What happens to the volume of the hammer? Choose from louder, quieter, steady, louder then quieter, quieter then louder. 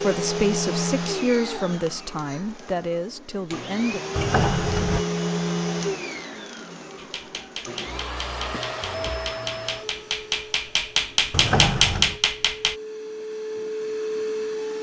louder.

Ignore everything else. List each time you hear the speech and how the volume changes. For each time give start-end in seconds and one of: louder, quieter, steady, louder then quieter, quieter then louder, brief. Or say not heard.
0.0-4.0 quieter.